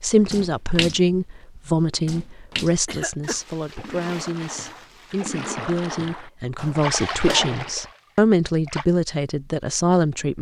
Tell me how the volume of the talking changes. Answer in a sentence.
The loudness of the talking goes down, then up.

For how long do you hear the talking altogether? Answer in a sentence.
You can hear the talking for 10 seconds altogether.